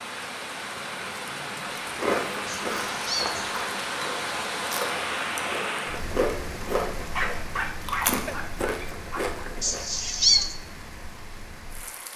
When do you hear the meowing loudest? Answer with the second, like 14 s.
10 s.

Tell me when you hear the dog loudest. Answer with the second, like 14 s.
7 s.